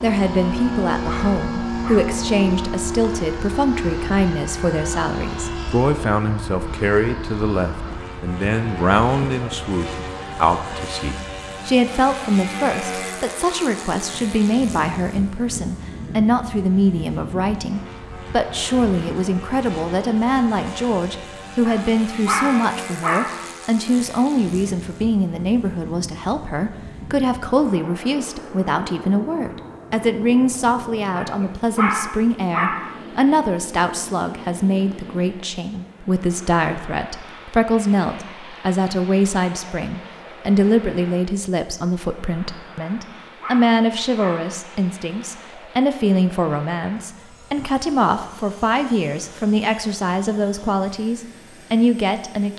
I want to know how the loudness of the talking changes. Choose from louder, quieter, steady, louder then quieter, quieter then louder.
steady.